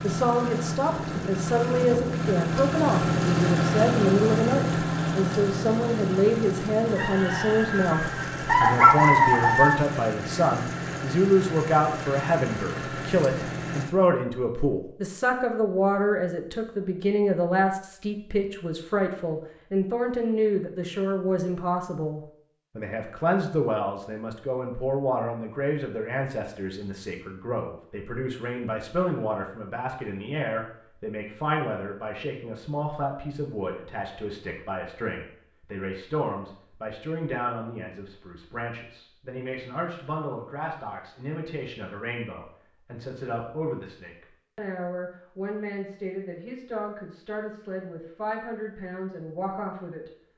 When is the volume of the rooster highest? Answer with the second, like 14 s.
9 s.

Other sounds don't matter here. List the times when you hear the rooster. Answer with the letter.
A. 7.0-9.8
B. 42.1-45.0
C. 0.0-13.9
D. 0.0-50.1
A.